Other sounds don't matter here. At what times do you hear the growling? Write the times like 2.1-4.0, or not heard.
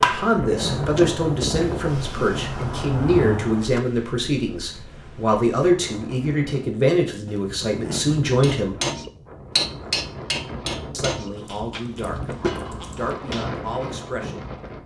0.4-1.1, 7.2-8.1, 11.3-13.2.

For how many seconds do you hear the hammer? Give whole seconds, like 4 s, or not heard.
9 s.